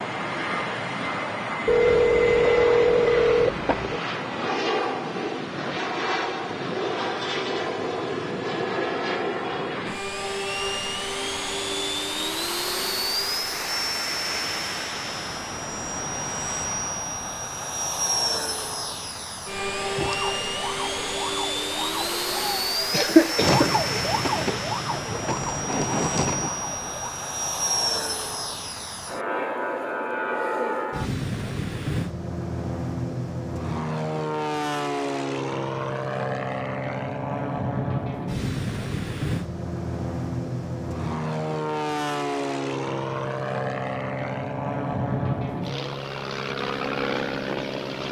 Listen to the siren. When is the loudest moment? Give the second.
24 s.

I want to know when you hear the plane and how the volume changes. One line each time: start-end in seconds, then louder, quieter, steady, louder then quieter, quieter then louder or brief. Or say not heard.
0.0-48.0 steady.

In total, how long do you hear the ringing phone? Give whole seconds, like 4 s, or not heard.
2 s.